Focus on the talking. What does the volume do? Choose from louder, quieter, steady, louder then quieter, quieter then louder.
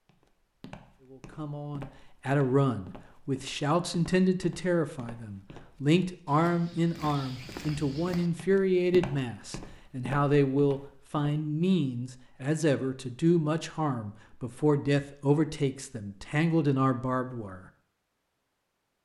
steady.